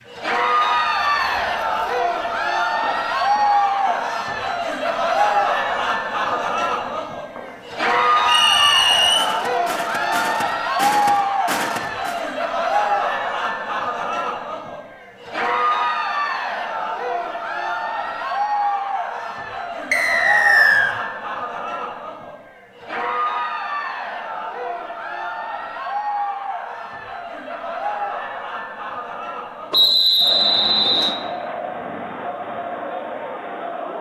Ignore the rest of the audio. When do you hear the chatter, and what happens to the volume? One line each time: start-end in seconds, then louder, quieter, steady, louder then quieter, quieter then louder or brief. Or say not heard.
0.1-33.9 quieter.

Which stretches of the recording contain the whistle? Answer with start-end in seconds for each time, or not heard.
8.2-9.3, 19.9-20.9, 29.7-31.1.